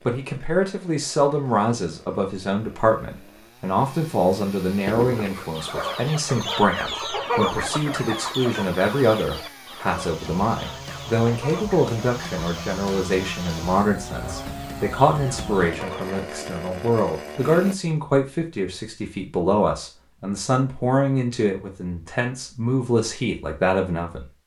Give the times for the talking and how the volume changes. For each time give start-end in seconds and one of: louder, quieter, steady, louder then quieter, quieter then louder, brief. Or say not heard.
0.1-24.2 steady.